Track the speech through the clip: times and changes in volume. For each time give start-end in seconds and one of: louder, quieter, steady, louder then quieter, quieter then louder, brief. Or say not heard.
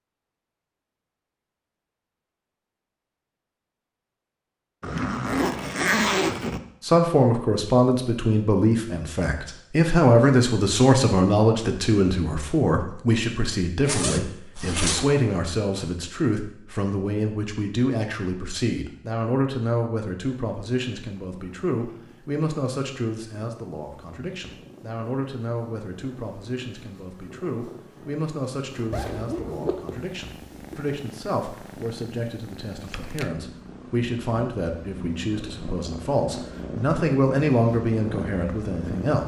6.8-39.2 quieter then louder.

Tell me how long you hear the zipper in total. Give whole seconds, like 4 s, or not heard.
5 s.